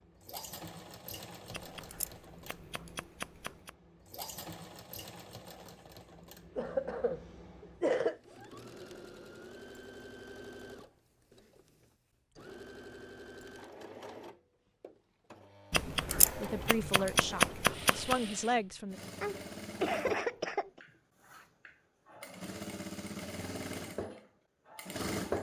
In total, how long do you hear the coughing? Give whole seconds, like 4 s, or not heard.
3 s.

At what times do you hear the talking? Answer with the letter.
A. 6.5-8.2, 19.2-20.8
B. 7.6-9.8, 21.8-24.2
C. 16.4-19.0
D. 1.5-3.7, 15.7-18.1
C.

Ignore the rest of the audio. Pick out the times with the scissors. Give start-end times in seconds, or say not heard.
1.5-3.7, 15.7-18.1.